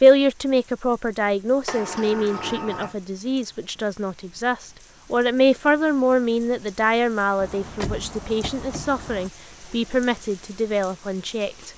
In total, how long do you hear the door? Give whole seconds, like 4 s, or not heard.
3 s.